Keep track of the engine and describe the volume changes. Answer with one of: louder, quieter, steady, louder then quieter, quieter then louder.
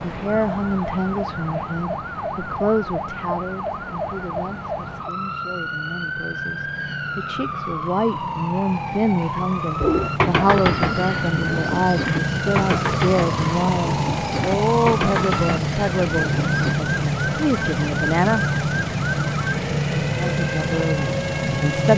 louder.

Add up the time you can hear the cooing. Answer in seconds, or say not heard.
7 s.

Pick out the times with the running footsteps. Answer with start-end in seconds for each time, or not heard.
not heard.